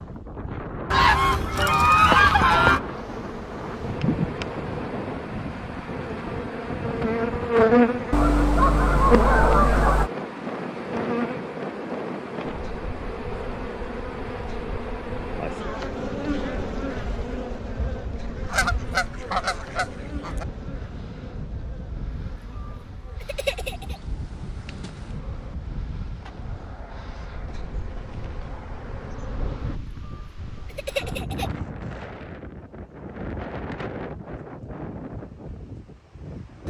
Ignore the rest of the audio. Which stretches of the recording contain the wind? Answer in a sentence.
The wind can be heard from 0.0 to 36.6 s.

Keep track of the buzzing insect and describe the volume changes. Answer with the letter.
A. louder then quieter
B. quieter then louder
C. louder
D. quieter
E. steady
D.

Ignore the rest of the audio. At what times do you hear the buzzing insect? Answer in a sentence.
The buzzing insect can be heard from 2.1 to 29.8 s.